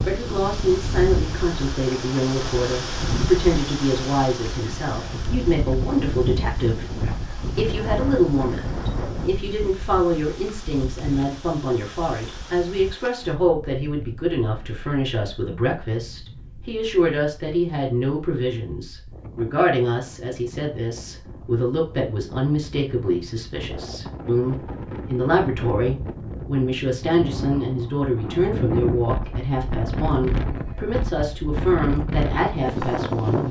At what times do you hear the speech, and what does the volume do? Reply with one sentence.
The speech can be heard from 0.1 to 33.4 s, at a steady volume.